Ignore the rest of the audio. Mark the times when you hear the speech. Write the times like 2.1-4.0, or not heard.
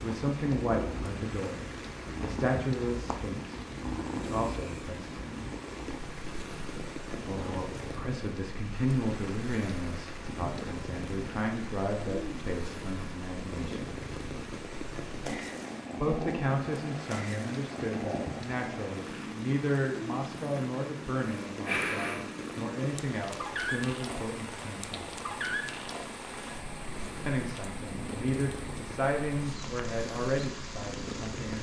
0.0-5.5, 7.2-13.9, 15.9-25.1, 27.2-31.5.